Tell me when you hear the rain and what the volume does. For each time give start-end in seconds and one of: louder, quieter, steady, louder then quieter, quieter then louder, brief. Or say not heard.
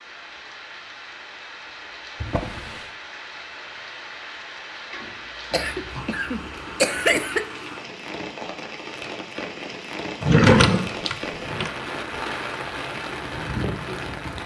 0.0-14.4 louder.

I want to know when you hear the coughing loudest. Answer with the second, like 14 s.
7 s.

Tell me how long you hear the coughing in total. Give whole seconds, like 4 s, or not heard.
2 s.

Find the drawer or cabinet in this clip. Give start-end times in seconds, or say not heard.
2.2-2.9, 4.9-6.0, 10.2-11.7.